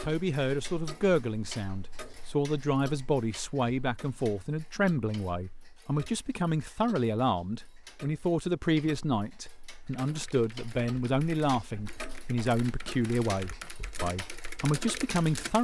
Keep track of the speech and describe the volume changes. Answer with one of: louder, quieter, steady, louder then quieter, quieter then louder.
steady.